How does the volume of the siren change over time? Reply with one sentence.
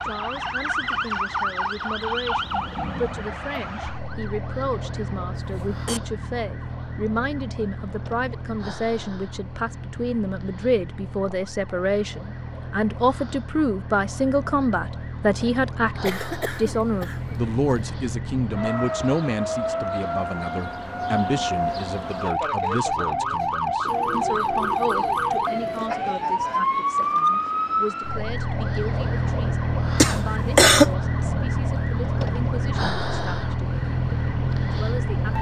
The loudness of the siren goes down, then up.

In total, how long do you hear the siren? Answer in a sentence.
You can hear the siren for 35 seconds altogether.